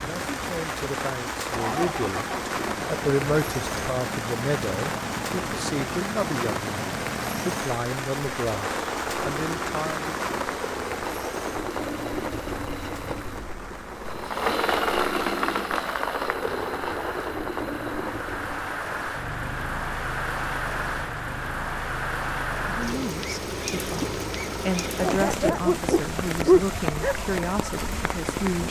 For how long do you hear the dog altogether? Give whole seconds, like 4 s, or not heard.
2 s.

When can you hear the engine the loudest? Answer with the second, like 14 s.
15 s.